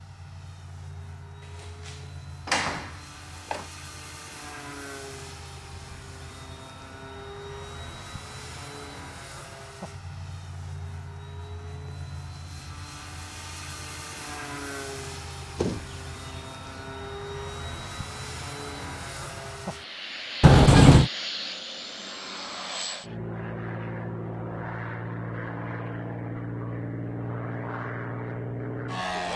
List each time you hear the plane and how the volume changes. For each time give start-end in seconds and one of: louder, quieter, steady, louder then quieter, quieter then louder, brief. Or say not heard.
0.0-29.3 louder.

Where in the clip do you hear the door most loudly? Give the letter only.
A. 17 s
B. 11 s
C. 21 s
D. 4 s
C.